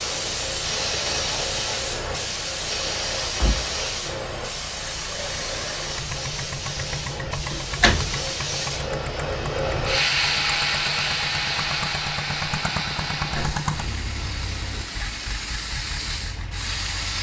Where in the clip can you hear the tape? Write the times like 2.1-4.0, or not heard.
not heard.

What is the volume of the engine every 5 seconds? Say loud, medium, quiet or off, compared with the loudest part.
medium, loud, loud, medium.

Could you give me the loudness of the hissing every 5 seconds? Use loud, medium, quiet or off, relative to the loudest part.
loud, loud, loud, medium.